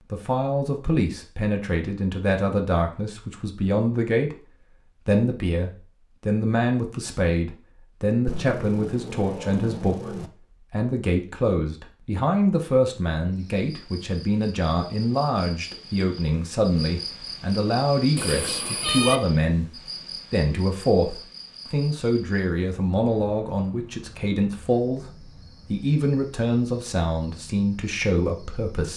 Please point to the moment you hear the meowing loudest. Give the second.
19 s.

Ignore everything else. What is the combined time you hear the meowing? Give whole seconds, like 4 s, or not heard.
3 s.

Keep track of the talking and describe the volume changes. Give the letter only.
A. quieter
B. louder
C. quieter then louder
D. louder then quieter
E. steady
E.